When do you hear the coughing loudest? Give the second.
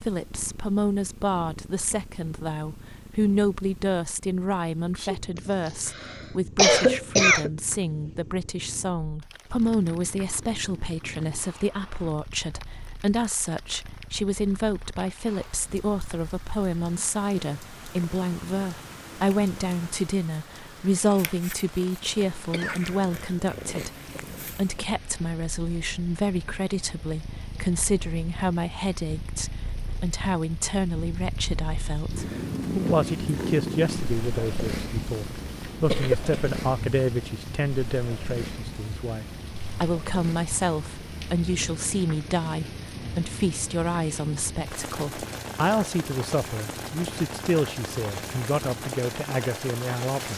7 s.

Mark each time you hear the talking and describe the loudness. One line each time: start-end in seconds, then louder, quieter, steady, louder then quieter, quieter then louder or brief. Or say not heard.
0.0-50.3 steady.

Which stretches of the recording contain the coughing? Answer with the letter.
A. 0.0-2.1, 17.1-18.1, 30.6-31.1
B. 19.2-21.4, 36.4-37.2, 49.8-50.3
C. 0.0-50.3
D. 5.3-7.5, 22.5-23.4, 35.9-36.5
D.